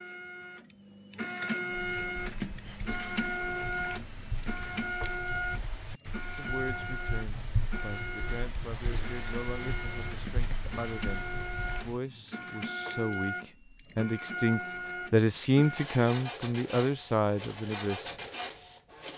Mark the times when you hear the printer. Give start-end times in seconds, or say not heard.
0.0-19.1.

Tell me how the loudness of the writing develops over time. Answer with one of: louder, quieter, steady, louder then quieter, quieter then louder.
louder.